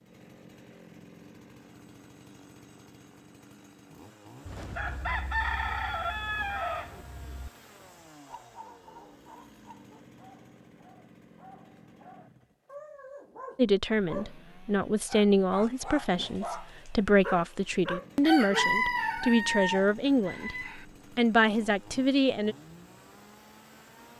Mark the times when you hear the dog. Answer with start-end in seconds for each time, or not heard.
8.2-18.7.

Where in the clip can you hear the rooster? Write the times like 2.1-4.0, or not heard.
4.5-7.5, 18.2-20.9.